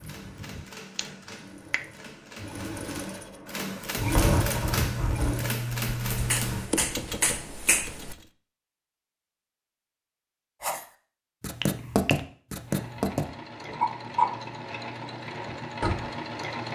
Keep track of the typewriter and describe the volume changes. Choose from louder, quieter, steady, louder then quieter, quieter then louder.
louder.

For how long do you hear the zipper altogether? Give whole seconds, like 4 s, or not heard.
3 s.